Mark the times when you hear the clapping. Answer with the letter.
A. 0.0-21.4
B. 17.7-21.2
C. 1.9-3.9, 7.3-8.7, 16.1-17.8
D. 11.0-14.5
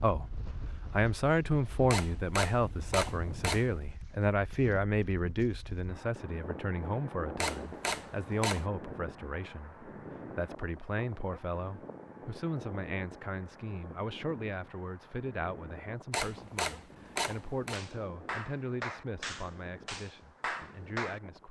B.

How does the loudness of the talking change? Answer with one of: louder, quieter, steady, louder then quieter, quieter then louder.
quieter.